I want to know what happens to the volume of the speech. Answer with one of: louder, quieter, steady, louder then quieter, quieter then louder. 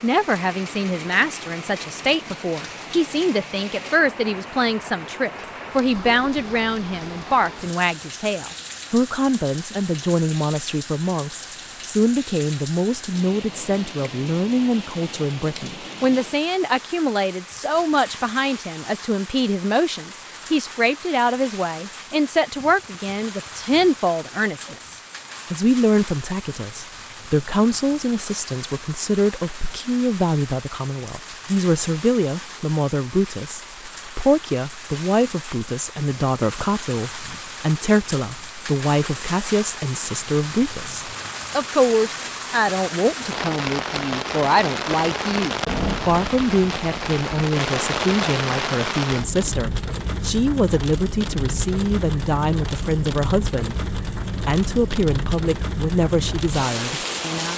steady.